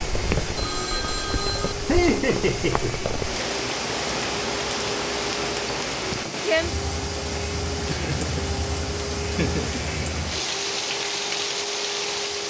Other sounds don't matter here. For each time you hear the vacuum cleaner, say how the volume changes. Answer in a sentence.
The vacuum cleaner can be heard from 0.0 to 12.4 s, at a steady volume.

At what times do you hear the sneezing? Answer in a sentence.
The sneezing can't be heard in this clip.